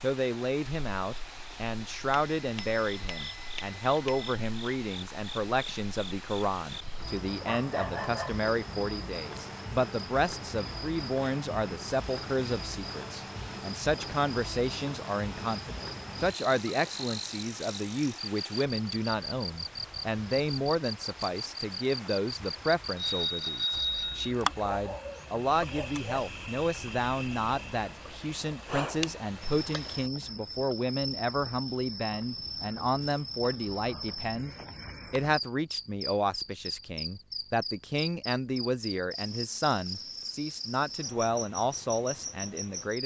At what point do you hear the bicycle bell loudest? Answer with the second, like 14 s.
24 s.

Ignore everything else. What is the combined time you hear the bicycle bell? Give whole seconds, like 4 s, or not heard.
3 s.